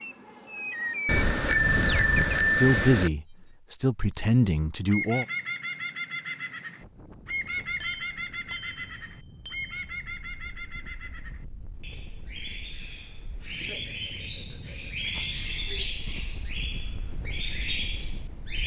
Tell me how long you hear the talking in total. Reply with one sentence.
The talking can be heard for 3 seconds in total.